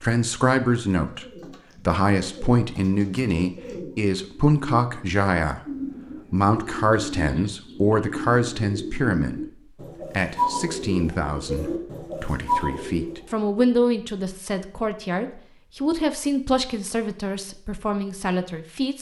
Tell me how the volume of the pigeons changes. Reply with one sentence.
The volume of the pigeons goes up.